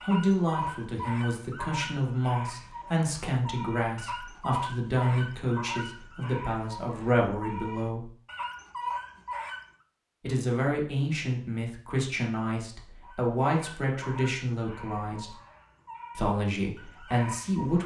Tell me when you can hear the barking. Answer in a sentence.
You can hear the barking from 0.0 to 9.7 s and from 13.0 to 17.8 s.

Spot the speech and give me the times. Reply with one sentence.
You can hear the speech from 0.0 to 8.1 s, from 10.2 to 15.3 s and from 16.1 to 17.8 s.